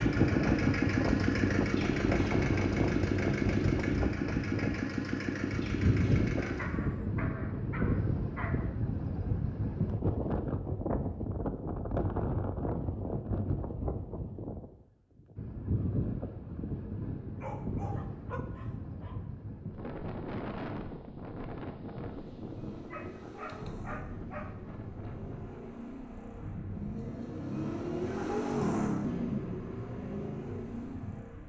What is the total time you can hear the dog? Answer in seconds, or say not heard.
6 s.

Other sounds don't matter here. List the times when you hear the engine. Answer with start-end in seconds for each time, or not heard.
0.0-6.8, 22.1-31.4.